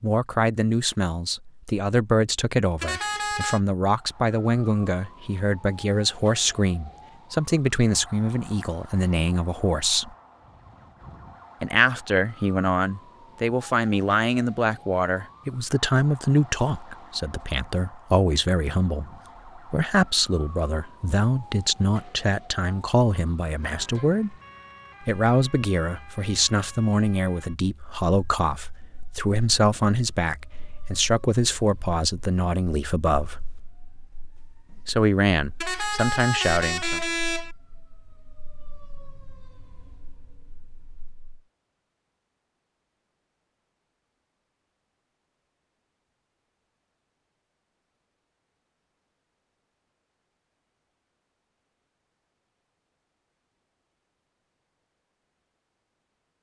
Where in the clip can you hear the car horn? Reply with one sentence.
The car horn can be heard from 2.8 to 3.6 s and from 35.6 to 37.5 s.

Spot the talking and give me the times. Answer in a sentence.
You can hear the talking from 0.0 to 10.1 s, from 11.6 to 24.4 s, from 25.0 to 33.6 s and from 34.9 to 37.0 s.